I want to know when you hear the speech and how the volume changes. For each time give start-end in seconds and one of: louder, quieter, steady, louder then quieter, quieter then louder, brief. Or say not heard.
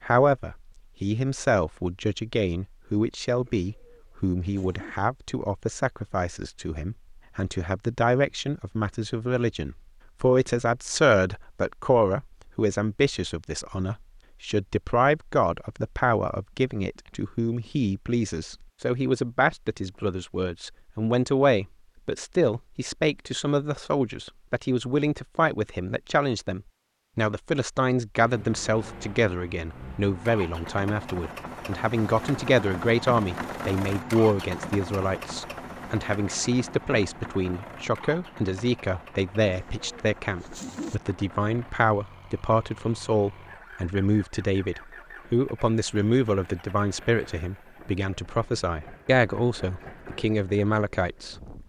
0.0-51.4 steady.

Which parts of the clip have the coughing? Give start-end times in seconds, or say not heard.
not heard.